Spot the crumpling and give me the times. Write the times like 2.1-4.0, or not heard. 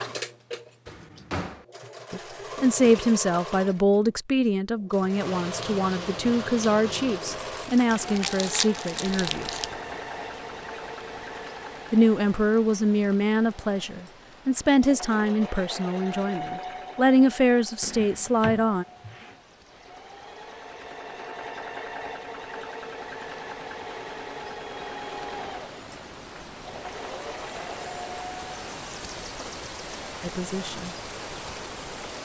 8.2-9.7.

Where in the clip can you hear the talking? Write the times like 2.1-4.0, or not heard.
2.1-9.5, 11.9-18.9, 30.2-30.9.